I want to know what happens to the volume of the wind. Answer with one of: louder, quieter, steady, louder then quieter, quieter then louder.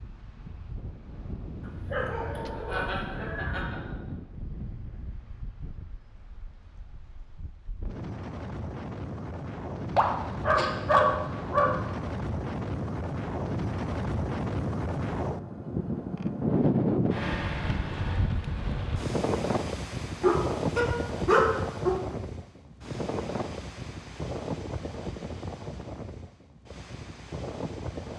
louder then quieter.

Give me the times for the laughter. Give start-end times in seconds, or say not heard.
2.0-4.0.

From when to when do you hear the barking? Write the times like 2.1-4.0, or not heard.
1.9-3.6, 9.9-11.9, 20.2-21.9.